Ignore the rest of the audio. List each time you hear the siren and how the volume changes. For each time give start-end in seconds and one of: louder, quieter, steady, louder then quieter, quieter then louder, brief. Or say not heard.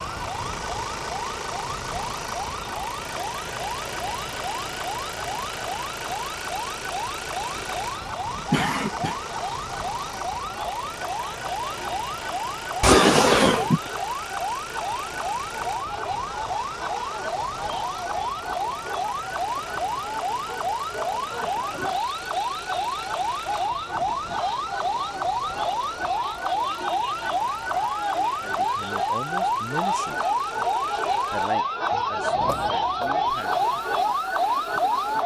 0.0-35.2 louder.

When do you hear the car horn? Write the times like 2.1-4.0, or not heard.
not heard.